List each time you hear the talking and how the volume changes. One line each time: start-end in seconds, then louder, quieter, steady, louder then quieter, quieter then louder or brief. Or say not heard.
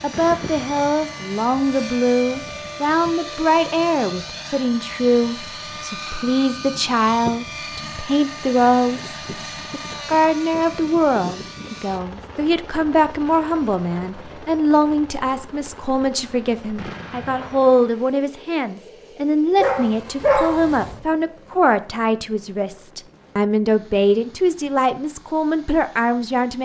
0.0-26.6 steady.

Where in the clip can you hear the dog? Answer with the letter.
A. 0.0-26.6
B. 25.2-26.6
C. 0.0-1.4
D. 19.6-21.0
D.